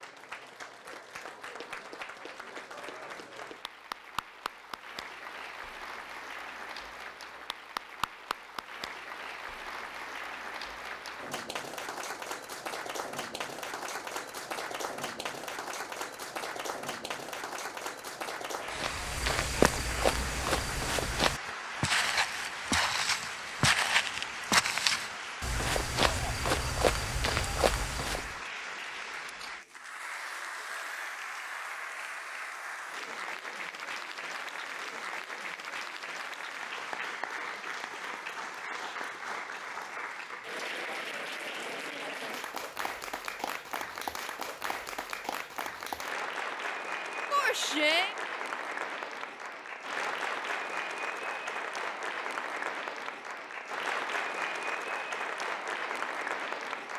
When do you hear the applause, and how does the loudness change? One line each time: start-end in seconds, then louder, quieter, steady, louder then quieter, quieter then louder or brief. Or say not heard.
0.0-56.9 louder.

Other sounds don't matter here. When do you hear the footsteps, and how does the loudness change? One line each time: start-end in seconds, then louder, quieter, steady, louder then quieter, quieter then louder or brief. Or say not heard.
18.8-28.4 steady.